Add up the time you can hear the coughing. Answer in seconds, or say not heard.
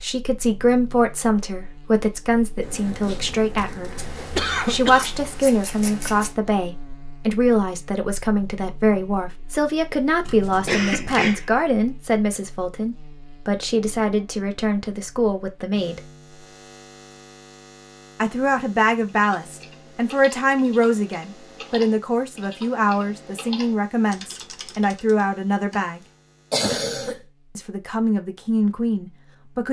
4 s.